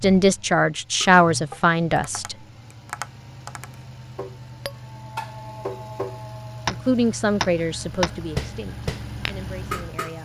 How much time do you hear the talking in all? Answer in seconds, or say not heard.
6 s.